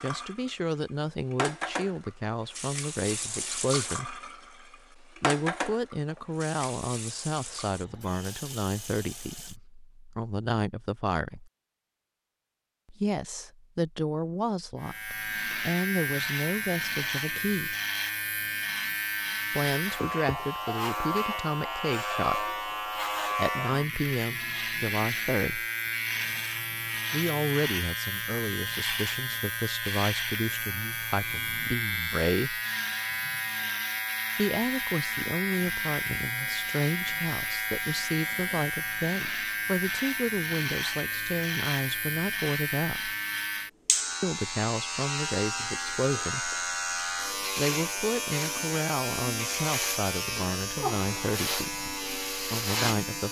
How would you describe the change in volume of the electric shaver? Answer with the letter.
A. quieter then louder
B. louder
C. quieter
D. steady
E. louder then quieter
D.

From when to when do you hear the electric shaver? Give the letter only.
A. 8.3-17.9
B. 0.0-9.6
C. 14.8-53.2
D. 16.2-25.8
C.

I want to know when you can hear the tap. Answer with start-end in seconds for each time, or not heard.
0.0-9.6.